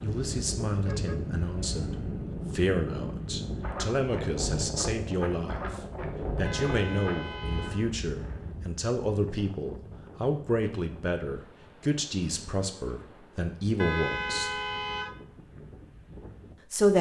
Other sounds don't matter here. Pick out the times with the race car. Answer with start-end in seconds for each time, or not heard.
not heard.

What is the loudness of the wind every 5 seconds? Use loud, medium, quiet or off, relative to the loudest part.
loud, loud, quiet, quiet.